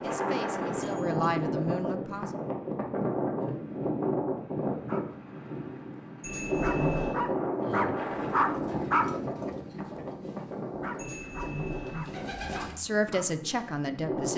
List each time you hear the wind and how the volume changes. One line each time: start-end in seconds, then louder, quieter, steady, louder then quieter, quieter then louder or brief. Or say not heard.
0.0-14.3 quieter.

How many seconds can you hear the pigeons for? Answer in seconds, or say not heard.
5 s.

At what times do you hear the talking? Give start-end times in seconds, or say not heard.
0.0-2.4, 12.5-14.3.